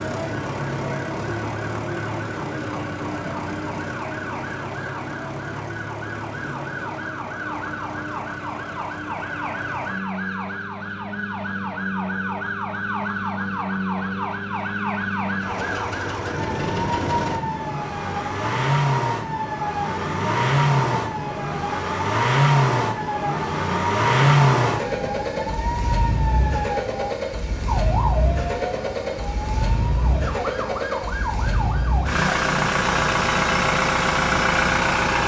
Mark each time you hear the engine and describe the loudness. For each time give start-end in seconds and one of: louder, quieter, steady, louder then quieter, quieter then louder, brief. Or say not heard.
0.0-35.2 louder.